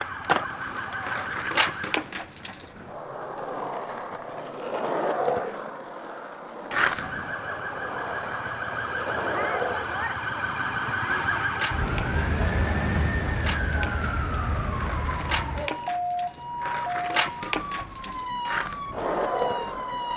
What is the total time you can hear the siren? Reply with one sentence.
You can hear the siren for 15 seconds altogether.